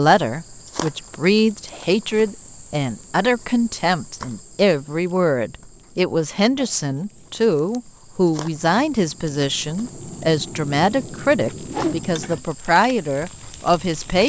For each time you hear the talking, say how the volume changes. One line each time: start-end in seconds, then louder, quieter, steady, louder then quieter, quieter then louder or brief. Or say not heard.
0.0-14.2 steady.